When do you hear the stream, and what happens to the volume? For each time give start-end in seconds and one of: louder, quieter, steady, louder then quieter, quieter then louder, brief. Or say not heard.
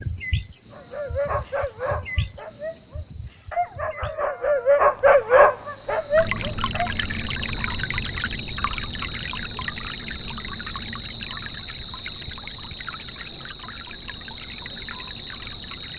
6.1-15.9 quieter.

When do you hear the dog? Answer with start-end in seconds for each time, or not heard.
0.7-6.9.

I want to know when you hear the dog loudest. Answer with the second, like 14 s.
5 s.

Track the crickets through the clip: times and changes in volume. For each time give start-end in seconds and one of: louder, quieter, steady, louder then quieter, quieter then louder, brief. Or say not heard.
0.0-15.9 quieter then louder.